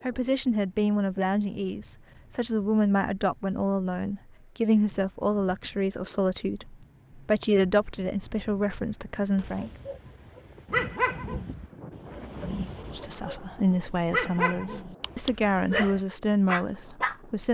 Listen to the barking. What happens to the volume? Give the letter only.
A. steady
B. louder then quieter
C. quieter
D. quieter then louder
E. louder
D.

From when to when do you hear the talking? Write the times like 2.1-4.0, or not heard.
0.0-9.7, 12.9-17.4.